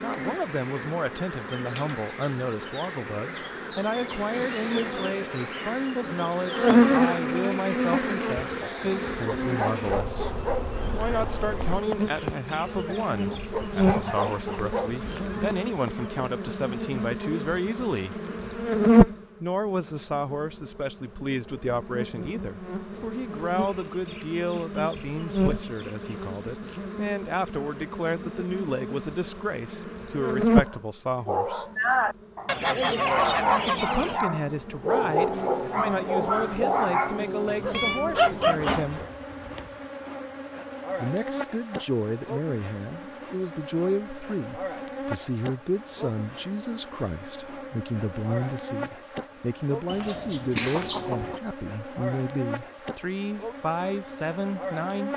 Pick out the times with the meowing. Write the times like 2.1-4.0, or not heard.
37.5-39.8.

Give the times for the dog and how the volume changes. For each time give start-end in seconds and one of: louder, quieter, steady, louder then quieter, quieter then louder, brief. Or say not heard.
8.4-16.1 steady
30.6-38.8 steady.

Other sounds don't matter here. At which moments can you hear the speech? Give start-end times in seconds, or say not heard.
0.0-18.1, 19.4-31.6, 33.6-39.0, 41.0-55.1.